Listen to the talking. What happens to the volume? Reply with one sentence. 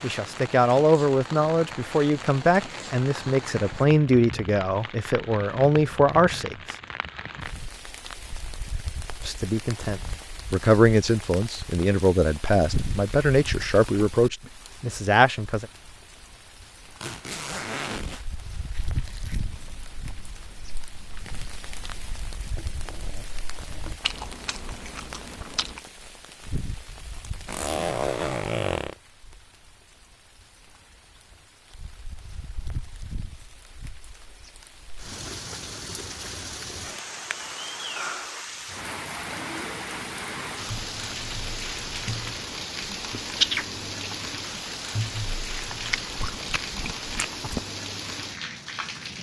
The loudness of the talking stays about the same.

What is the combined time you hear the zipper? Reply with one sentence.
You can hear the zipper for 3 seconds altogether.